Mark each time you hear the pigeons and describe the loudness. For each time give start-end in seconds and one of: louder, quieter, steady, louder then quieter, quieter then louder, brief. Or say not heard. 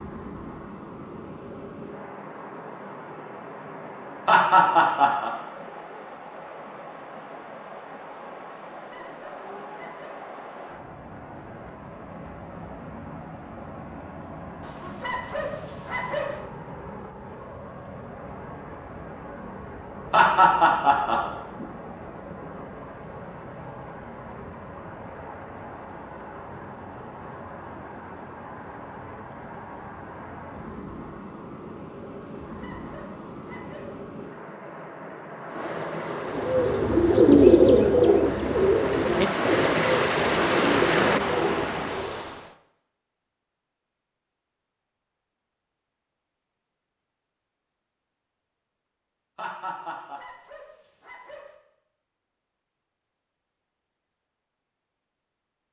36.2-42.1 quieter.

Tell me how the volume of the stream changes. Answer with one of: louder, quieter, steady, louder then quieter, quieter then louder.
louder.